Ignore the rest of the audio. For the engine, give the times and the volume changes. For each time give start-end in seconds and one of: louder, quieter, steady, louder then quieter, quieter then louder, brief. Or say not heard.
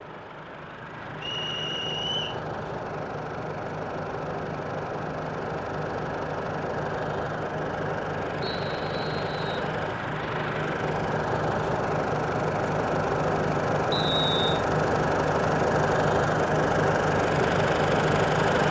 0.0-18.6 louder.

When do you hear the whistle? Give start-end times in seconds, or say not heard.
1.2-2.4, 8.4-9.7, 13.9-14.5.